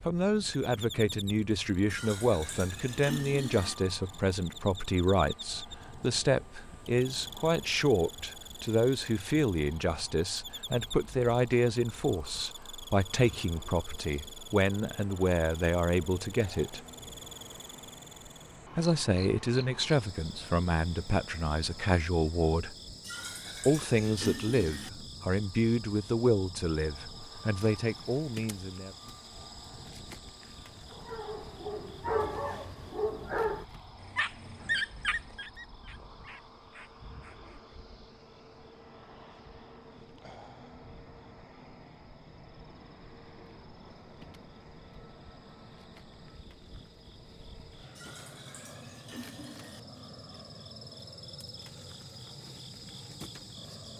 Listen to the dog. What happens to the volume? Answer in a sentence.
The volume of the dog goes down.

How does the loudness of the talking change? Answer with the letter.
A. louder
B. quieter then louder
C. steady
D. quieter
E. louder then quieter
C.